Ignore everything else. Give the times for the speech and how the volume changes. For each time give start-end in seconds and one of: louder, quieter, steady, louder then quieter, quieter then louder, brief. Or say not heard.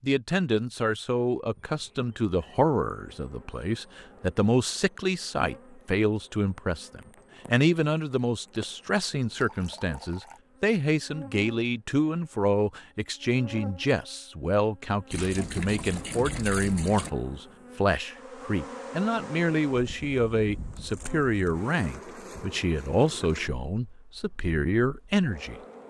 0.0-25.6 steady.